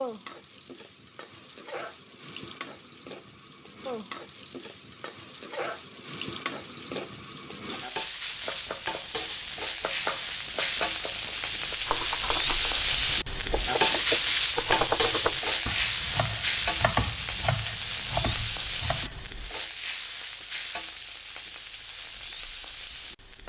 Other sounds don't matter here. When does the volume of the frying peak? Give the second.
14 s.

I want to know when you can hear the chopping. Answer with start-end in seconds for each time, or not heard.
8.3-19.3.